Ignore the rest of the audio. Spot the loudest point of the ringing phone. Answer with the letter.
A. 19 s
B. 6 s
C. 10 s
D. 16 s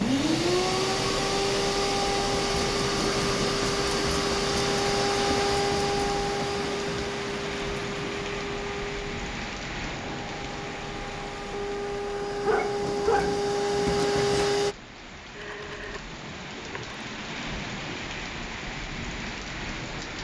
D.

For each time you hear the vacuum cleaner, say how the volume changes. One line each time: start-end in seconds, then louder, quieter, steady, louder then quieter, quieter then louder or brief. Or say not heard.
0.0-14.8 quieter then louder.